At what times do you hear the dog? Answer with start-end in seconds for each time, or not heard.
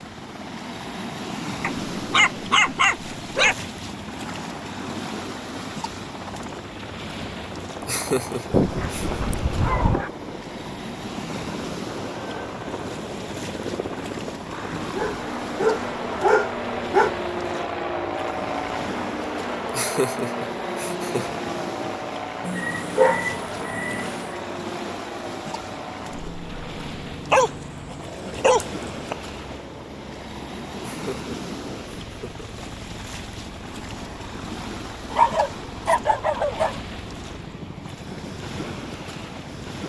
1.6-3.5, 8.5-10.1, 14.9-17.1, 22.4-24.4, 27.3-29.1, 35.1-36.8.